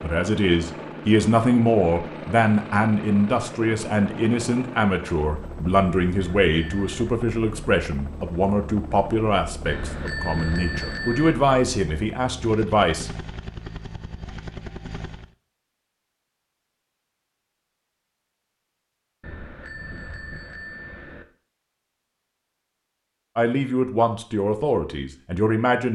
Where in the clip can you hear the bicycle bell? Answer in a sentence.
The bicycle bell can be heard from 6.2 to 7.0 s, from 9.7 to 11.3 s and from 19.2 to 21.2 s.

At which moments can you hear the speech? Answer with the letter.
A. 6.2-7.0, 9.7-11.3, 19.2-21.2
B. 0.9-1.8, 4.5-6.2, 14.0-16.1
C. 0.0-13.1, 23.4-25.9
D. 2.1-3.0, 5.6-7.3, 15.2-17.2
C.